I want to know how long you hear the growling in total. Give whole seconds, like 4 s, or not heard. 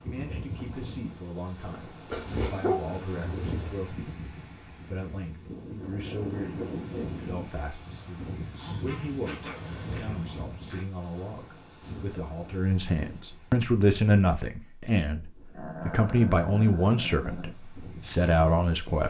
6 s.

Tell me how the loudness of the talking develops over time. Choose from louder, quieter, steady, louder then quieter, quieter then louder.
louder.